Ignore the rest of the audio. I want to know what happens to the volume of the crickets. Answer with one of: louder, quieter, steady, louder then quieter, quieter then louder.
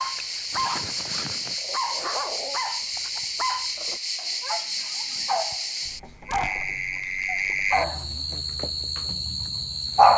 steady.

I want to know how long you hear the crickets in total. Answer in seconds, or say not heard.
10 s.